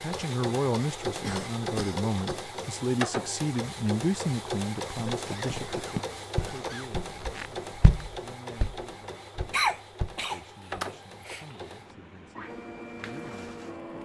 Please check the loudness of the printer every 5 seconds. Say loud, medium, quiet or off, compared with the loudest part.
loud, loud, medium.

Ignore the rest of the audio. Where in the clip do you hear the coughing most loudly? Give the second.
10 s.